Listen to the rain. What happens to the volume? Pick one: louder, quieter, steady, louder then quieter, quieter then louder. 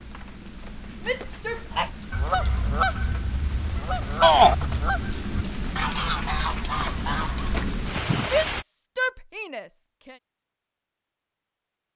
louder.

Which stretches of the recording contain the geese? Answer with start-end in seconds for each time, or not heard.
1.7-8.3.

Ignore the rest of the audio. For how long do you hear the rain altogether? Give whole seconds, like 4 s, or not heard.
9 s.